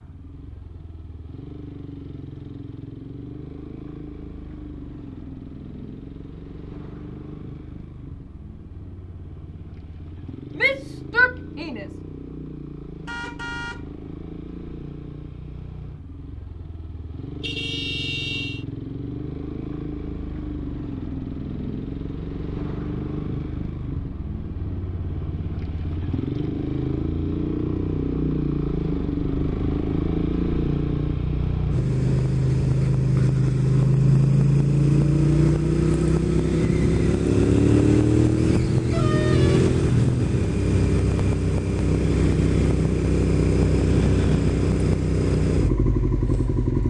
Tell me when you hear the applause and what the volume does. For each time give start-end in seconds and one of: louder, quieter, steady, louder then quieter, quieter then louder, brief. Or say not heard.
not heard.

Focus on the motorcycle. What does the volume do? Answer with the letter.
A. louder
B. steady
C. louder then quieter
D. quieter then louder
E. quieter
A.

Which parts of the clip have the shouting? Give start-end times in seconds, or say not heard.
10.6-11.8.